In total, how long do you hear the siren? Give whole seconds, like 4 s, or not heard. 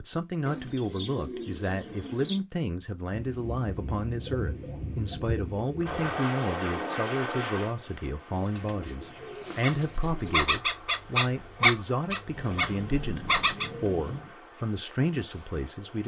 not heard.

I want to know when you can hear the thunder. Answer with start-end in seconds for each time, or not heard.
3.1-6.2.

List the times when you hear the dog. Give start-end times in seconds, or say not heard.
9.6-13.7.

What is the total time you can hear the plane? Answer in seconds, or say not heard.
10 s.